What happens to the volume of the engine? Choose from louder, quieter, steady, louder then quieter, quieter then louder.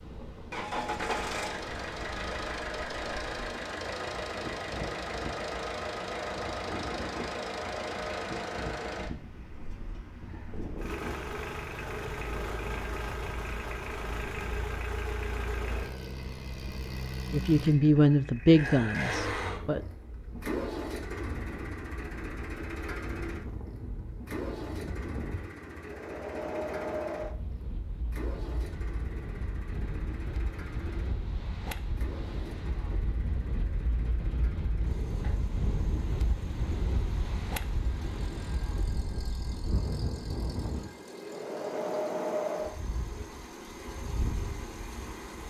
quieter.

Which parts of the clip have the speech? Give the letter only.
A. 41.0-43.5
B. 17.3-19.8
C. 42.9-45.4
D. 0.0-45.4
B.